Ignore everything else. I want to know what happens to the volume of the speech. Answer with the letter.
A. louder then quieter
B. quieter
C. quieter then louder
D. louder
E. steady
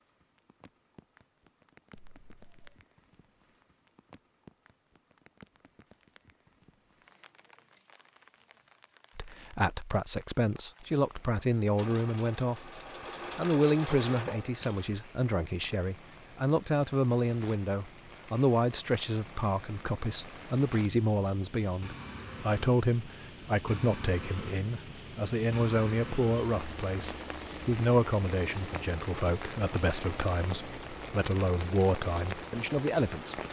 E.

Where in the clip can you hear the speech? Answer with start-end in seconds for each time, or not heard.
9.2-12.7, 13.3-33.4.